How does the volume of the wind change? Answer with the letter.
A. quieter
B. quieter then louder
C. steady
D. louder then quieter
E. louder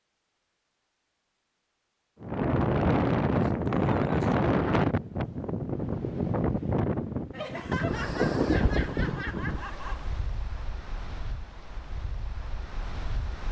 A.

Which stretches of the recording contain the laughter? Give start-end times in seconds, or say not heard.
3.3-4.3, 7.3-10.1.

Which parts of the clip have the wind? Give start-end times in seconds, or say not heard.
2.2-13.4.